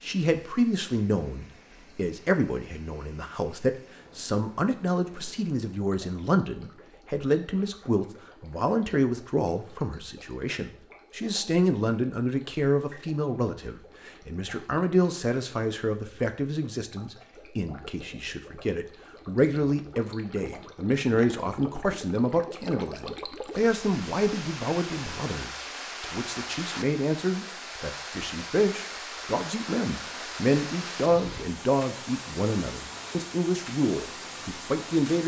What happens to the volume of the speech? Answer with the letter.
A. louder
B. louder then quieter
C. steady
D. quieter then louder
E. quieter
C.